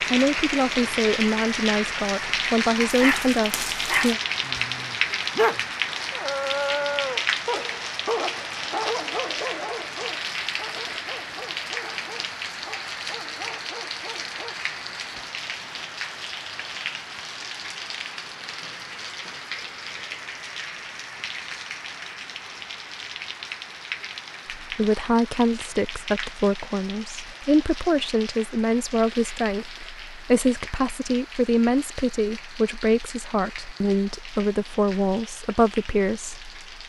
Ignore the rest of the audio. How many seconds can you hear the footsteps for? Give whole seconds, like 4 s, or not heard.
not heard.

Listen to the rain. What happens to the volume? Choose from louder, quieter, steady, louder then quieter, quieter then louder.
quieter.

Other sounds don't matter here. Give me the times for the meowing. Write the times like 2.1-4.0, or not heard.
not heard.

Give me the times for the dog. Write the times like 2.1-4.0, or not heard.
2.8-14.6.